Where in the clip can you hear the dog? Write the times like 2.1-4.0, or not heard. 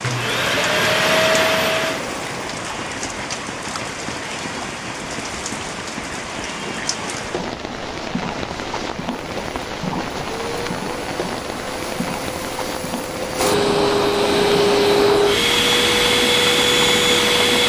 not heard.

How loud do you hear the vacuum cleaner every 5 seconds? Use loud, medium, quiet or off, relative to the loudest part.
loud, off, medium, loud.